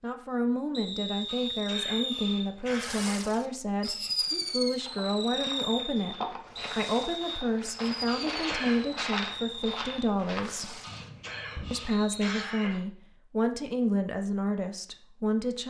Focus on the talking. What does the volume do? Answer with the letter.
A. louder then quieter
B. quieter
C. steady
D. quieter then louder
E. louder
C.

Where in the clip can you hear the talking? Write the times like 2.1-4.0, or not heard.
0.0-6.2, 6.8-10.8, 11.7-15.6.